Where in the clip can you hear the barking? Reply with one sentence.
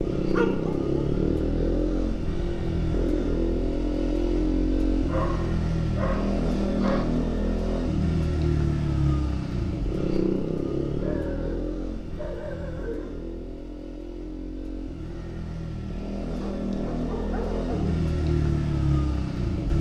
The barking can be heard from 0.3 to 1.0 s, from 5.0 to 7.0 s, from 10.9 to 13.2 s and from 16.4 to 18.0 s.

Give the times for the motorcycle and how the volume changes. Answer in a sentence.
You can hear the motorcycle from 0.0 to 19.7 s, getting quieter then louder.